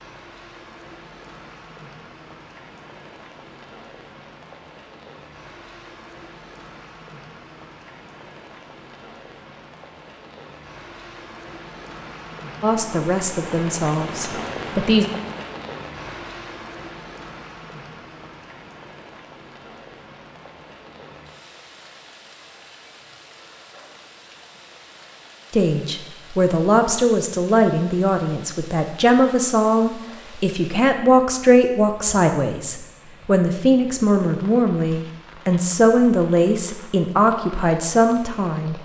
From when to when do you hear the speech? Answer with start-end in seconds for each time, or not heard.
12.6-15.1, 25.5-38.8.